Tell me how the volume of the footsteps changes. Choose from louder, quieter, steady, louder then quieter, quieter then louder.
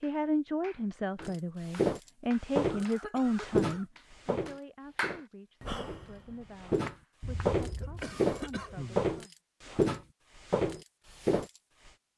quieter then louder.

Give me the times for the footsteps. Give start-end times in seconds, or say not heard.
1.2-11.9.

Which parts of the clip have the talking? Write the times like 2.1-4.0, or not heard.
0.0-9.3.